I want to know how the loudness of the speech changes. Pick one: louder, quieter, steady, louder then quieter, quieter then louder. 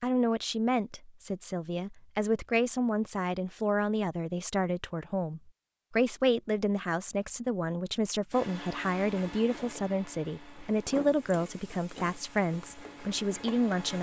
steady.